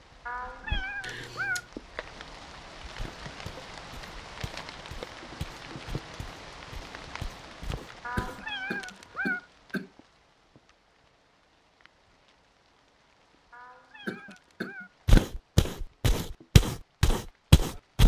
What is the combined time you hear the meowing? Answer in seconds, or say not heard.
4 s.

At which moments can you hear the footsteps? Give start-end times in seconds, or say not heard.
3.0-8.4, 15.1-18.0.